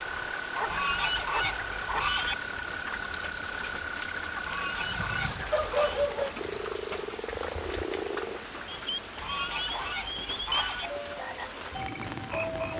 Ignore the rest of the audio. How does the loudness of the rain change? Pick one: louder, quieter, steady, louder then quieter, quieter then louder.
steady.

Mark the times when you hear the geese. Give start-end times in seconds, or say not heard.
0.7-2.4, 4.5-6.0, 9.2-10.9.